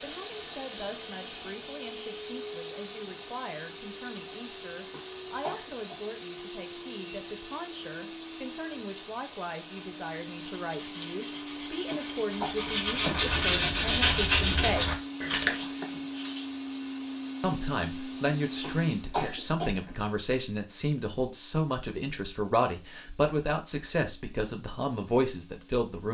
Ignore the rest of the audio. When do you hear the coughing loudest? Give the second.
19 s.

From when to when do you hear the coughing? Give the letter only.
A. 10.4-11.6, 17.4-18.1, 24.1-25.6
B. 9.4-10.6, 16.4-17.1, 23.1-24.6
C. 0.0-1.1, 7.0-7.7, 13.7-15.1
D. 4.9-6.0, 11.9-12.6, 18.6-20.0
D.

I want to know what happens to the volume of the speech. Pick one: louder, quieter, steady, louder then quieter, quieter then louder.
louder.